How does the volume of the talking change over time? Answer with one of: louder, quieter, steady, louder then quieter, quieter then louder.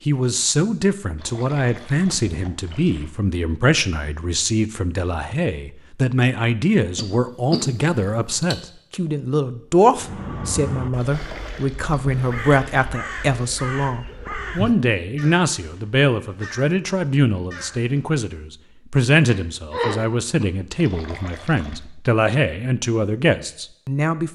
steady.